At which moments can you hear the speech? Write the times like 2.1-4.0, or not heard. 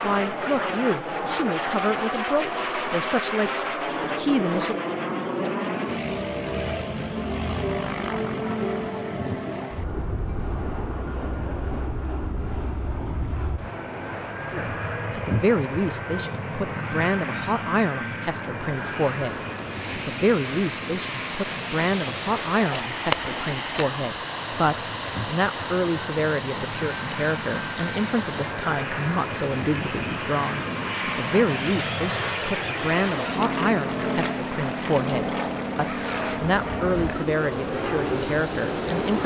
0.0-4.8, 14.5-39.2.